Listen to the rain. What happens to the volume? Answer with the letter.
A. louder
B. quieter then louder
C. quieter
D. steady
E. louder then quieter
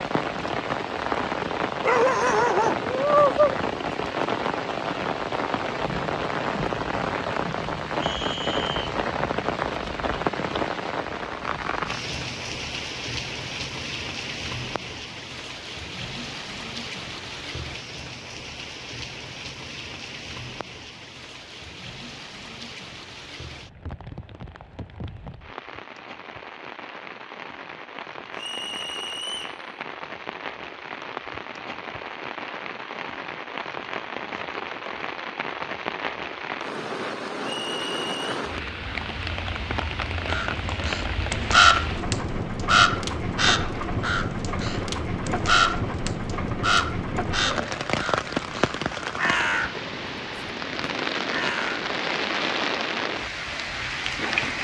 B.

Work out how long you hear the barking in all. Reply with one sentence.
You can hear the barking for 2 seconds altogether.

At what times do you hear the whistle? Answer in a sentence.
You can hear the whistle from 8.0 to 8.9 s, from 28.4 to 29.6 s and from 37.4 to 38.4 s.